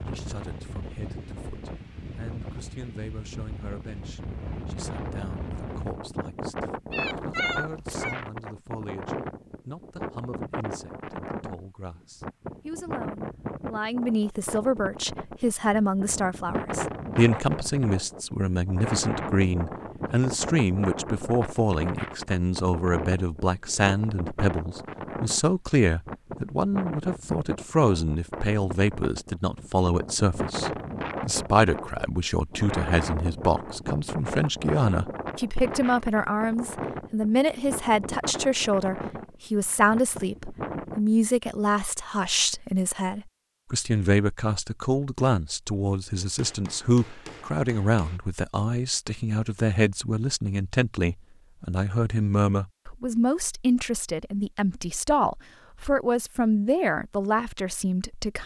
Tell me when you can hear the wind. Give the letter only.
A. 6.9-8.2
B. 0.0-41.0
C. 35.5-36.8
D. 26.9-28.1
B.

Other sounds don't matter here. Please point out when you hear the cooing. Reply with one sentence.
The cooing can't be heard in this clip.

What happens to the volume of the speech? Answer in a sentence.
The volume of the speech goes up.